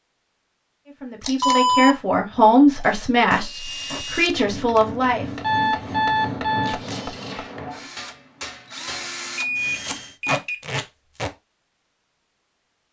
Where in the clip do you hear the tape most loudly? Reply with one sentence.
The loudest moment of the tape is at 10 seconds.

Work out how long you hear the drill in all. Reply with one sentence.
You can hear the drill for 7 seconds altogether.